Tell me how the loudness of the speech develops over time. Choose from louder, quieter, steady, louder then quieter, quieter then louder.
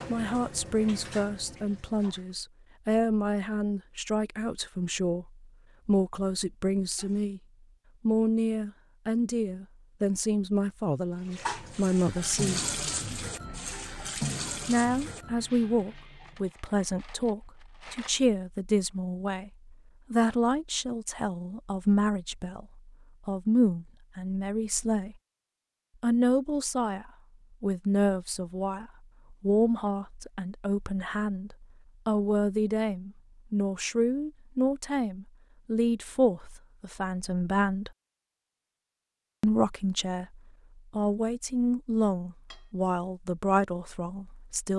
steady.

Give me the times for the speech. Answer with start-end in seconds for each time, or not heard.
0.1-7.4, 8.1-12.7, 14.7-25.1, 26.0-37.9, 39.4-44.7.